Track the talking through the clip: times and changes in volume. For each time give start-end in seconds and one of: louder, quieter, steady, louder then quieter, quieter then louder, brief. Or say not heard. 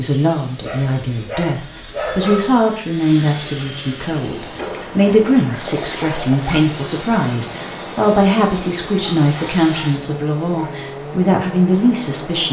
0.0-12.4 steady.